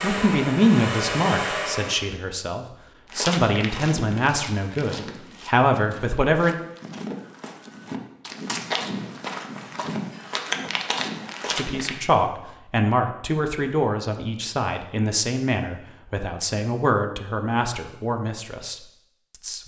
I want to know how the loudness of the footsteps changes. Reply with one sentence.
The loudness of the footsteps goes down, then up.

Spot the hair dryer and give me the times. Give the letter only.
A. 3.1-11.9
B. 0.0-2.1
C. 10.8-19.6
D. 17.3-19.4
B.